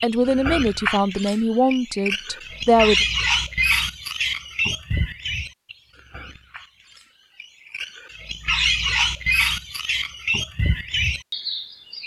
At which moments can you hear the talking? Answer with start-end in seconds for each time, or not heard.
0.0-3.0.